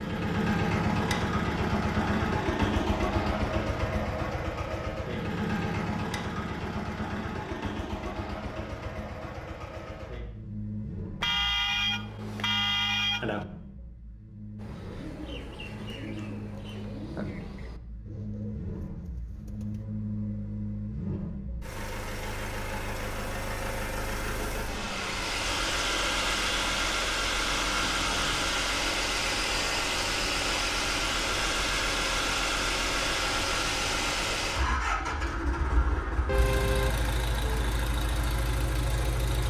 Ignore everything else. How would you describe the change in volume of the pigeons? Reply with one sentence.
The volume of the pigeons goes down.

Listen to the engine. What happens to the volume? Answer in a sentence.
The volume of the engine goes down, then up.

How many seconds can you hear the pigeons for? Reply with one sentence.
The pigeons can be heard for 5 seconds in total.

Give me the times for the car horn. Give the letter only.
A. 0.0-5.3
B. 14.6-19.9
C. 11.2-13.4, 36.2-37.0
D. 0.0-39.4
C.